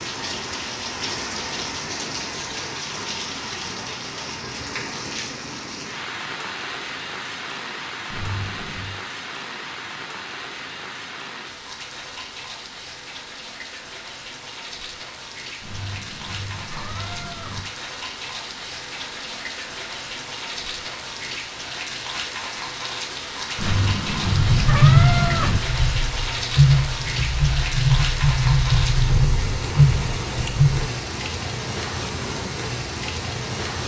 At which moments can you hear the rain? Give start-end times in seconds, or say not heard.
0.0-33.8.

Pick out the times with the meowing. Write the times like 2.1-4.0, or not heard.
8.1-8.9, 15.6-17.6, 23.6-25.6.